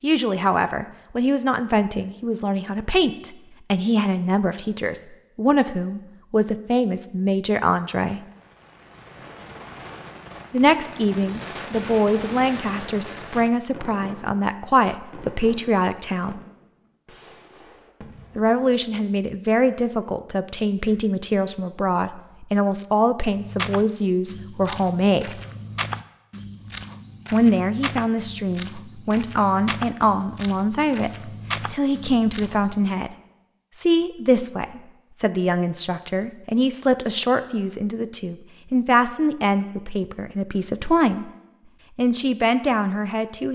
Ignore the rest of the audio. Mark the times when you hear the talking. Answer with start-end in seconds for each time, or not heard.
0.0-8.2, 10.5-16.4, 18.4-25.4, 27.3-33.1, 33.7-41.3, 42.0-43.5.